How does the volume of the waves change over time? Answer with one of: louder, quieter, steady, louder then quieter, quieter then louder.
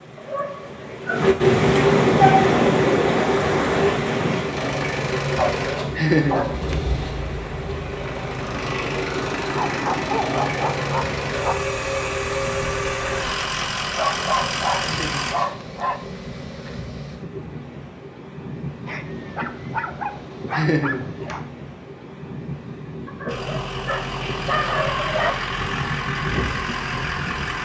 quieter.